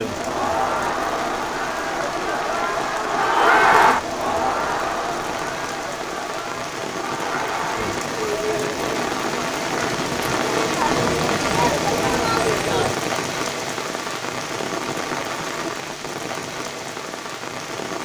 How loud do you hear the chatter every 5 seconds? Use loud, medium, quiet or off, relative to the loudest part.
loud, medium, loud, off.